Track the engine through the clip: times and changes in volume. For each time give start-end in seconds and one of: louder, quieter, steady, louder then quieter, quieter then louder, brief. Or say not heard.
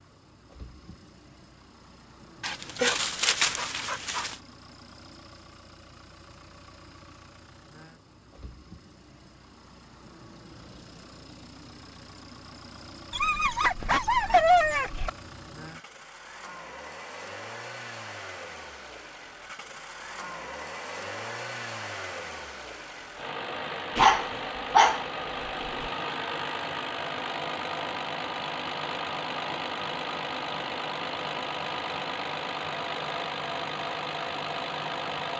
0.0-35.3 louder.